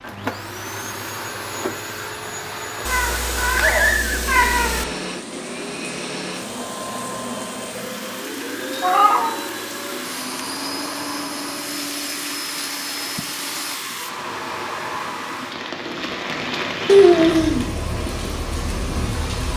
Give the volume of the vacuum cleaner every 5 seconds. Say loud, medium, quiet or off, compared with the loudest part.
loud, loud, loud, off.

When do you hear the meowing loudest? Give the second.
17 s.